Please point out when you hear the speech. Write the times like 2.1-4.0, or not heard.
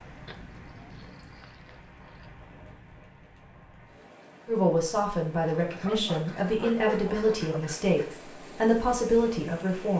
4.5-9.9.